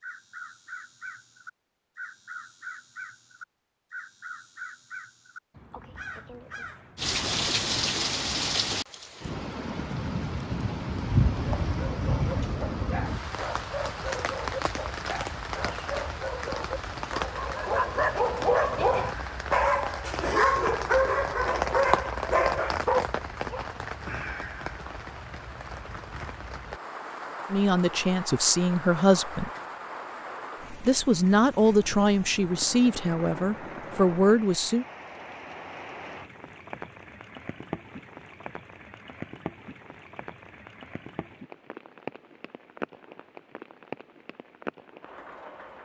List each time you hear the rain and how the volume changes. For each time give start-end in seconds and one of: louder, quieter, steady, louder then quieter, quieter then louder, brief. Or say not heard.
7.0-45.8 quieter.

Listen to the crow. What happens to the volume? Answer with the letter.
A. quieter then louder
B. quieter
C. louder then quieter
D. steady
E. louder
D.